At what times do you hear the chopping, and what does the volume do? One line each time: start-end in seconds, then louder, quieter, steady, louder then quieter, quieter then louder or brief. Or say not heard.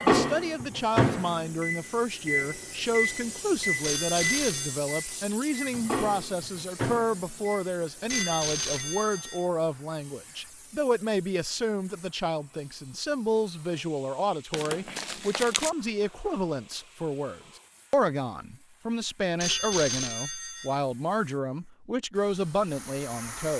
not heard.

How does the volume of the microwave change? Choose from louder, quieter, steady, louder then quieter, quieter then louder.
quieter.